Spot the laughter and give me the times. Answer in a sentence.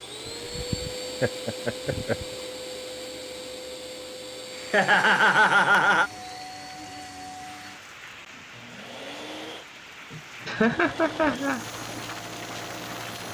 The laughter can be heard from 0.2 to 2.2 s, from 4.7 to 6.1 s and from 10.1 to 11.6 s.